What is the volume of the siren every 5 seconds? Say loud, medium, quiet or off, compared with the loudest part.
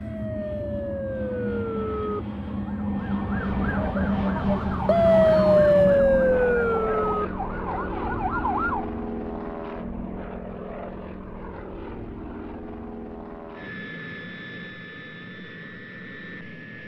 medium, loud, off, off.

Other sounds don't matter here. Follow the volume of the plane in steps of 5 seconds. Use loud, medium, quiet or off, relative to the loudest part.
loud, loud, medium, medium.